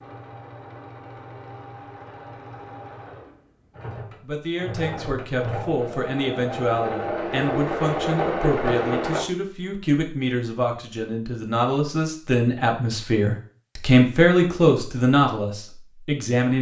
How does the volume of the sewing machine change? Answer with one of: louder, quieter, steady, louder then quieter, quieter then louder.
louder.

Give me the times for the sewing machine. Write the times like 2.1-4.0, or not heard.
0.0-9.2.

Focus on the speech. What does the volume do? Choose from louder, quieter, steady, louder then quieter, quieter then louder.
louder.